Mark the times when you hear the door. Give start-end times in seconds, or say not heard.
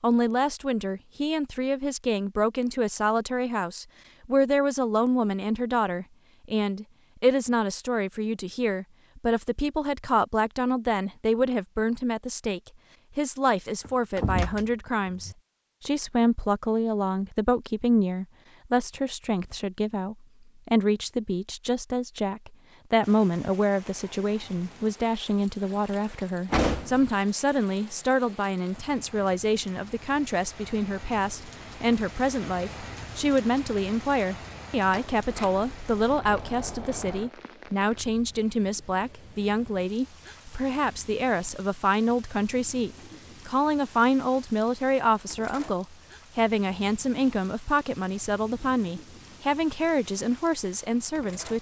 13.8-15.3, 26.4-27.1, 34.9-37.3.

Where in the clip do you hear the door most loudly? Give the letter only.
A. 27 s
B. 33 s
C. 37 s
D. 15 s
A.